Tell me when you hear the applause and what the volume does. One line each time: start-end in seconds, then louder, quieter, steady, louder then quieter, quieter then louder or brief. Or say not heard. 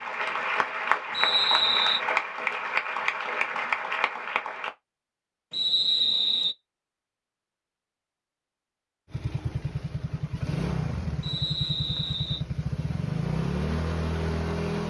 0.0-4.7 steady.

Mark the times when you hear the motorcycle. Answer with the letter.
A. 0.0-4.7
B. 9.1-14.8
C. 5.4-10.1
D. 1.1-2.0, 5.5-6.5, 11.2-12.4
B.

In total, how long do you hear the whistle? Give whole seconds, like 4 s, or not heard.
3 s.